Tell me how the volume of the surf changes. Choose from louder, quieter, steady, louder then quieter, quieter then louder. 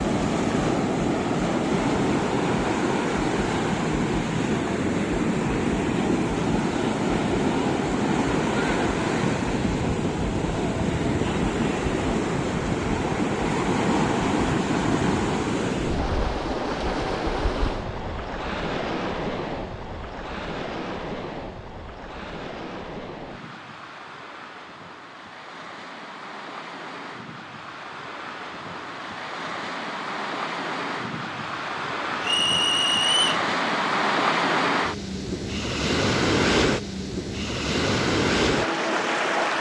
quieter then louder.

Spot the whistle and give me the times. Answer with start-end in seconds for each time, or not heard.
32.2-33.4.